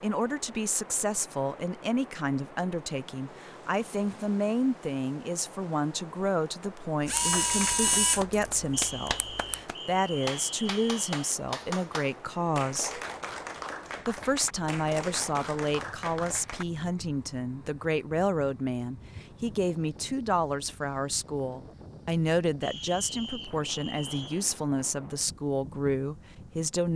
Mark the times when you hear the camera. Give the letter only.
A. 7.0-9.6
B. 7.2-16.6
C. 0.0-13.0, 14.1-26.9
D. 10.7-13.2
A.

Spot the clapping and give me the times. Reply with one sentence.
You can hear the clapping from 7.2 to 16.6 s.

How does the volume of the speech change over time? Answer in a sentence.
The volume of the speech stays about the same.